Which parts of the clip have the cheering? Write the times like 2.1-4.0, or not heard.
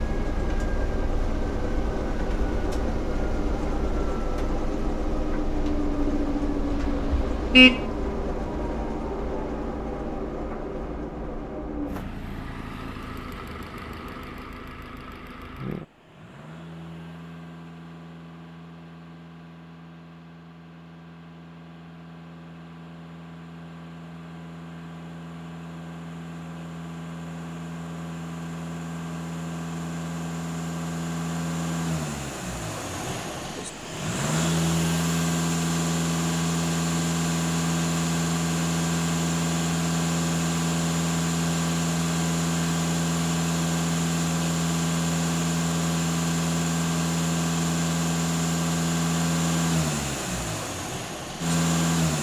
not heard.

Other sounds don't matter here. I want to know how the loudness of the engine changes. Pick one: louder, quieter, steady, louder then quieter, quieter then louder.
quieter then louder.